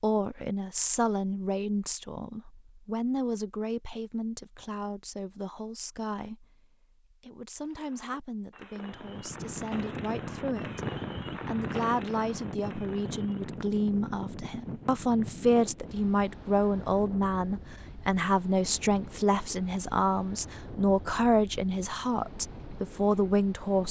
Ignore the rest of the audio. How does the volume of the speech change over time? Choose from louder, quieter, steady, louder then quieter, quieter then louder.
quieter then louder.